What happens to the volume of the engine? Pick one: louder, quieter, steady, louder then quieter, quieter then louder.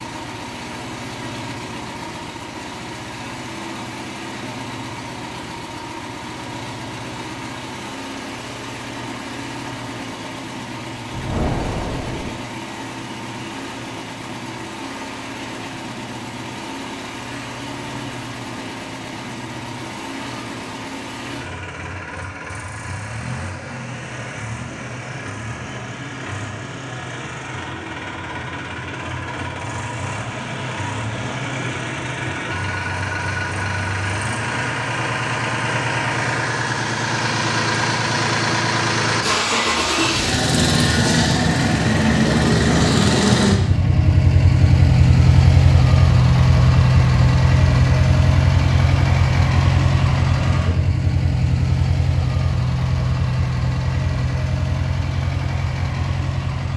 louder.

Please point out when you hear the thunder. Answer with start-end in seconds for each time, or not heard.
11.1-12.3.